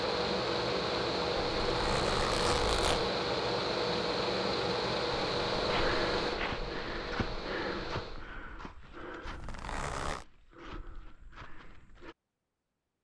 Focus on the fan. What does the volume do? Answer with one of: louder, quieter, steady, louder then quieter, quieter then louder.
quieter.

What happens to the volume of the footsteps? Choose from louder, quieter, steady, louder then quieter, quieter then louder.
quieter then louder.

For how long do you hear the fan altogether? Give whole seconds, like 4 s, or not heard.
8 s.